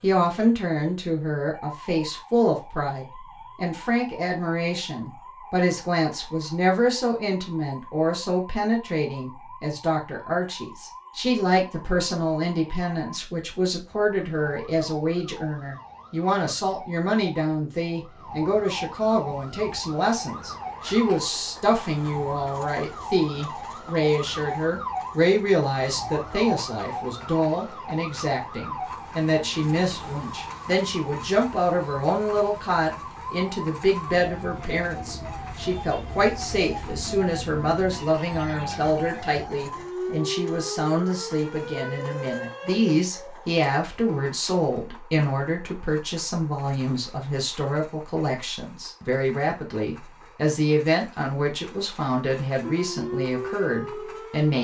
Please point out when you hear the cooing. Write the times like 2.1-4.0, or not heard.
not heard.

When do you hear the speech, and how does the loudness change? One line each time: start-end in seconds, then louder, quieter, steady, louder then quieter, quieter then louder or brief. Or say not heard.
0.0-54.5 steady.